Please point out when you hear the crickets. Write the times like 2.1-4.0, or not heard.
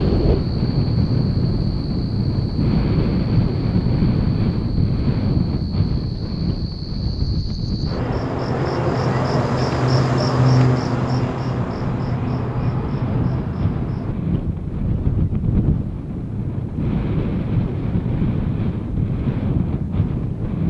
0.0-14.2.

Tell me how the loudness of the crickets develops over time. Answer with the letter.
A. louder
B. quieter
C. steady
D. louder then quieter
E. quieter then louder
D.